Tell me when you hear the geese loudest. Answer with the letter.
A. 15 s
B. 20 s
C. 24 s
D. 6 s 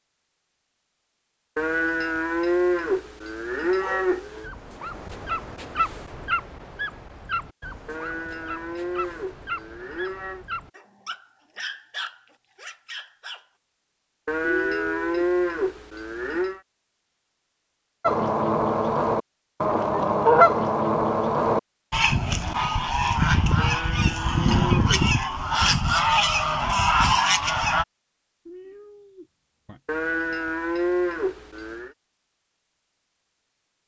B.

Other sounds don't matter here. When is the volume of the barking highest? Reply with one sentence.
The volume of the barking peaks at 6 seconds.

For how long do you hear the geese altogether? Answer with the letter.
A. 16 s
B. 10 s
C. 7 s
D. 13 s
B.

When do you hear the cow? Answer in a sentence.
You can hear the cow from 1.6 to 4.5 s, from 7.8 to 10.4 s, from 14.2 to 16.6 s, from 23.6 to 25.1 s and from 29.9 to 31.9 s.